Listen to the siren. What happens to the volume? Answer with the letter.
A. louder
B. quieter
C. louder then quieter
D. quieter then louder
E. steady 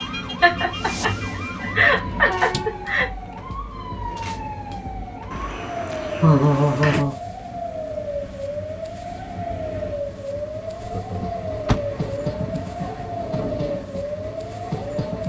E.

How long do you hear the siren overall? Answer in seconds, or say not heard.
15 s.